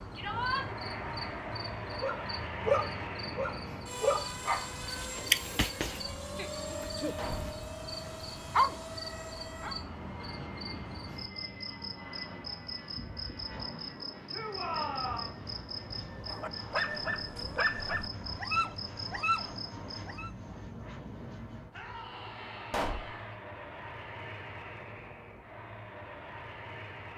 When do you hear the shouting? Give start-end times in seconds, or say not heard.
0.1-0.7, 14.3-15.3, 21.7-23.4.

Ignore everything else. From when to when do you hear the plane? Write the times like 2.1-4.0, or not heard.
0.1-27.1.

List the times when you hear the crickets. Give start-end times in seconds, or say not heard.
0.0-20.1.